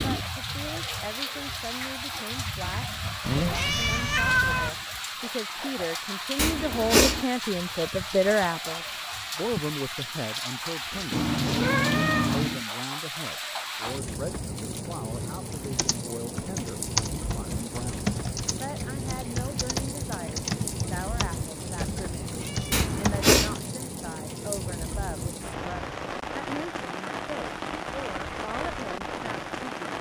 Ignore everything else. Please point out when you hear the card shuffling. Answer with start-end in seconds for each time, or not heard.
not heard.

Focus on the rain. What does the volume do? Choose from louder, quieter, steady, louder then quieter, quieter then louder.
steady.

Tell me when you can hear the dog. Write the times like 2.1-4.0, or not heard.
not heard.